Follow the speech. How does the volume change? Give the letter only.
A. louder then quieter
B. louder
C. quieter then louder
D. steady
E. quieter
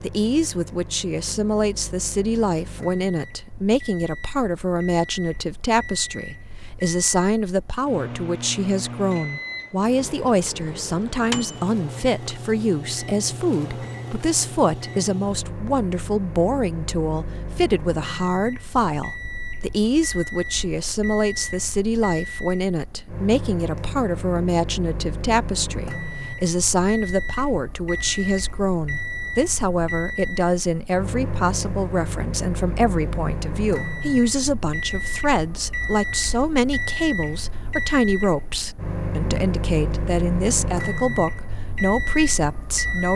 D.